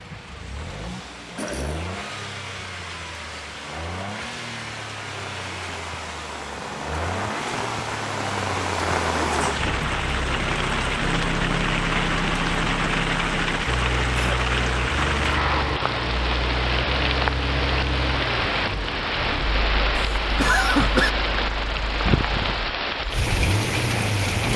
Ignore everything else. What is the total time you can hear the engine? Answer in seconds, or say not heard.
24 s.